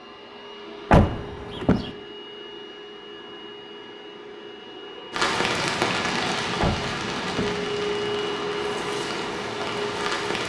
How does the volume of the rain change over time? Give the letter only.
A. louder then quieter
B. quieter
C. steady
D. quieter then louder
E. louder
B.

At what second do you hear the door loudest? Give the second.
1 s.